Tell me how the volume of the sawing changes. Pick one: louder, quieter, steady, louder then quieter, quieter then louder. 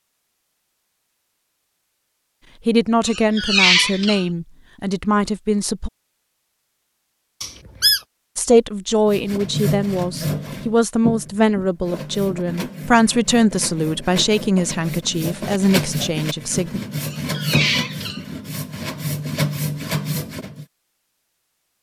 quieter then louder.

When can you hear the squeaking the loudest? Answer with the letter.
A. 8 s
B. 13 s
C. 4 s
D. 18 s
C.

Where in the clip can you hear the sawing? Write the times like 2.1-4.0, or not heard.
9.1-20.6.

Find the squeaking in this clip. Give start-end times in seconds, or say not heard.
3.0-4.2, 7.4-8.0, 17.0-18.2.